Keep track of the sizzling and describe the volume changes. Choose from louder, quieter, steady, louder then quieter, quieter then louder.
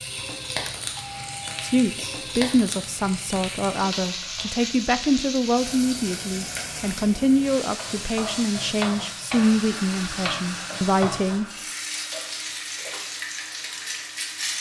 steady.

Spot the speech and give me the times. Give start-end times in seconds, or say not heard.
1.6-11.4.